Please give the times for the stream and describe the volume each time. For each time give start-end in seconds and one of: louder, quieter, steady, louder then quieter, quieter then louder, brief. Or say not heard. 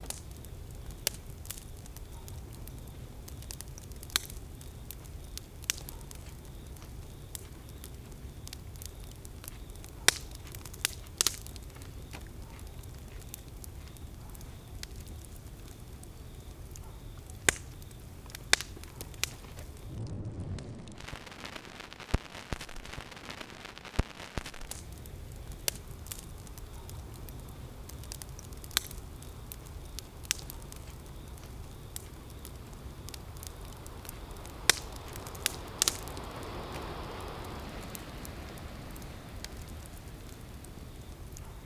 20.2-41.6 louder.